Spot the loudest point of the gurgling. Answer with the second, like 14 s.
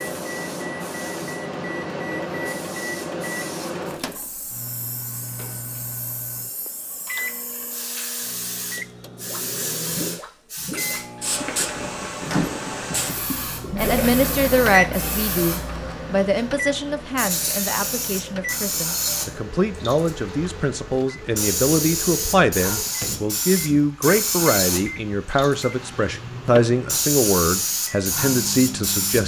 14 s.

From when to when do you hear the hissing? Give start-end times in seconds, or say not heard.
0.0-29.2.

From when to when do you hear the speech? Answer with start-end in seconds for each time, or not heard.
13.8-29.2.